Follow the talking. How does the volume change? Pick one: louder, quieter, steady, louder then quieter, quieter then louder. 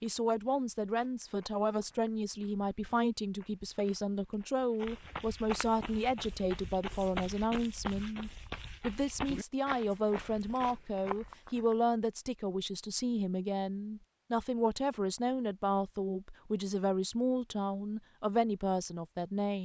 steady.